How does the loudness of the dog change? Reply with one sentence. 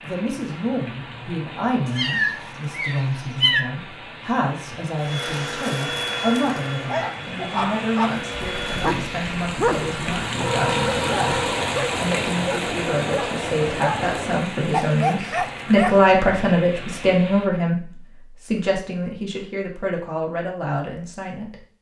The loudness of the dog stays about the same.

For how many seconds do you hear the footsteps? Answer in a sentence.
The footsteps can't be heard in this clip.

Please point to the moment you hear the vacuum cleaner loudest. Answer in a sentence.
The volume of the vacuum cleaner peaks at 6 seconds.